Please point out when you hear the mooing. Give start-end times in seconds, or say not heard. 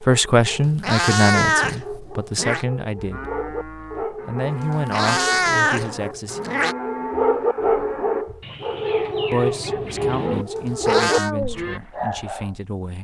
3.0-11.8.